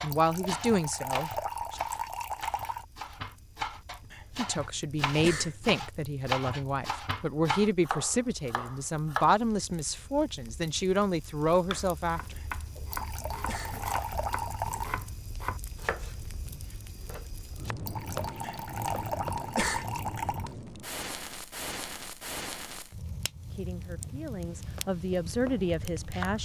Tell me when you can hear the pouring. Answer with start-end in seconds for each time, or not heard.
0.1-2.9, 12.9-14.9, 17.9-20.6.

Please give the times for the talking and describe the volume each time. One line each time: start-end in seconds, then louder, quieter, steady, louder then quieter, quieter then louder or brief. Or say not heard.
0.0-1.8 brief
4.3-12.3 steady
23.5-26.3 brief.